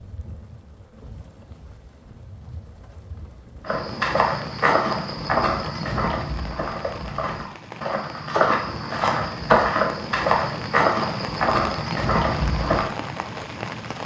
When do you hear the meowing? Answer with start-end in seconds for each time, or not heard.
not heard.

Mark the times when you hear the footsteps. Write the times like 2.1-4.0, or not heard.
3.6-12.9.